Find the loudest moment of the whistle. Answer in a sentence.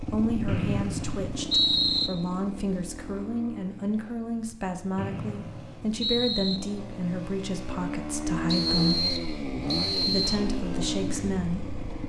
The volume of the whistle peaks at 2 seconds.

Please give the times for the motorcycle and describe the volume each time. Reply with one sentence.
You can hear the motorcycle from 0.0 to 12.0 s, getting quieter then louder.